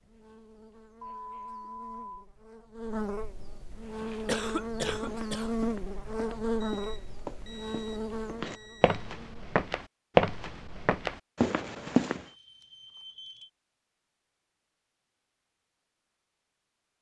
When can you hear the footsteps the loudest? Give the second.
10 s.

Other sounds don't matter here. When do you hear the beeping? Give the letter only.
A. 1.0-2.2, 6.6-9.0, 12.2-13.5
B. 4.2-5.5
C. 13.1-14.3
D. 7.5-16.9
A.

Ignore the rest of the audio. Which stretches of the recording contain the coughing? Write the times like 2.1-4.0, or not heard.
4.2-5.5.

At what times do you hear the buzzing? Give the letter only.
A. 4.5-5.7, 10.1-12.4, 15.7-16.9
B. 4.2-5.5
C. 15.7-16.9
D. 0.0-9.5
D.